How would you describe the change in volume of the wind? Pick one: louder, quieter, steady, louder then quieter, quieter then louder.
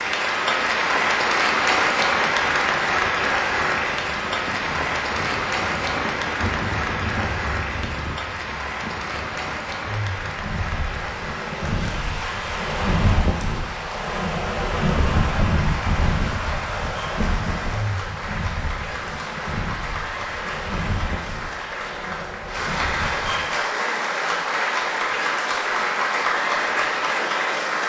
louder then quieter.